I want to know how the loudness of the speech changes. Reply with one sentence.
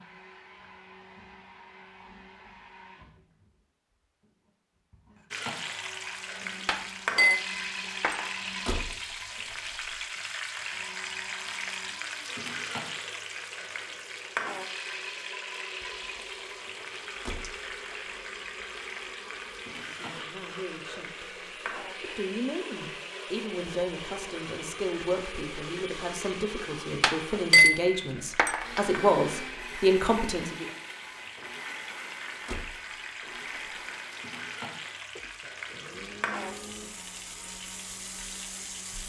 The volume of the speech goes up.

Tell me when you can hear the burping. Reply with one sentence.
The burping can't be heard in this clip.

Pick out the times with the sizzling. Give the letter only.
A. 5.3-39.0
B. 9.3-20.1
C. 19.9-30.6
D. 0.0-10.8
A.